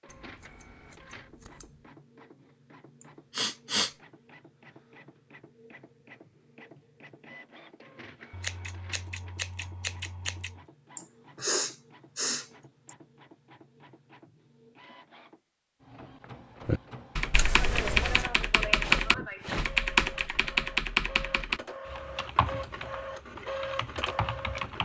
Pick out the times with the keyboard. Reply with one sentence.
You can hear the keyboard from 16.6 to 24.8 s.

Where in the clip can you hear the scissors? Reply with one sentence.
The scissors can be heard from 0.1 to 1.8 s, from 8.3 to 10.6 s and from 17.3 to 18.2 s.